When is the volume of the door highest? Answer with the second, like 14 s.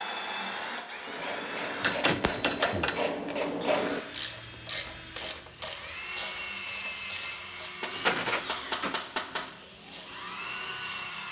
8 s.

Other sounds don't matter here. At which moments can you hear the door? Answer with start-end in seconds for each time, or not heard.
1.9-2.9, 7.9-9.0.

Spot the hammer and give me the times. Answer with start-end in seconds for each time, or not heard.
1.8-3.4, 7.8-9.6.